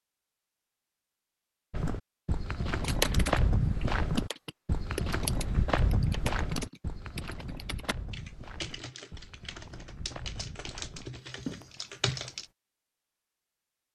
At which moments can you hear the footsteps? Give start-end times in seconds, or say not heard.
1.7-12.4.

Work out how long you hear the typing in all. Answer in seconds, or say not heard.
10 s.